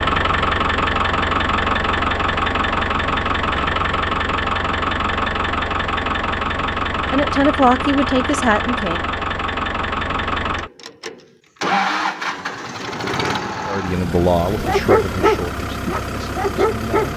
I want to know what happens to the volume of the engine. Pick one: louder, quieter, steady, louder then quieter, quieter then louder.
quieter.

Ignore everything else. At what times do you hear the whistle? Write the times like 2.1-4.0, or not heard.
not heard.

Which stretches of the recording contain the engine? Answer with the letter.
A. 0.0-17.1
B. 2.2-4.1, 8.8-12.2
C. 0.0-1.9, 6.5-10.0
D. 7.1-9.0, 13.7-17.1
A.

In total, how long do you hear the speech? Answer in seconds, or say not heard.
5 s.